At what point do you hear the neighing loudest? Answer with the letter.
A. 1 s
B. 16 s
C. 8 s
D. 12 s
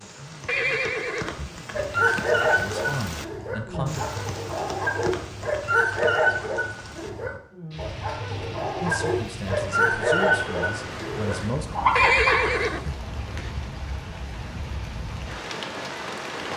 D.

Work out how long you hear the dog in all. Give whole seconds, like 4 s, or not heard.
11 s.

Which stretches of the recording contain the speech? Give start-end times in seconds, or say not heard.
0.0-4.0, 8.8-11.7.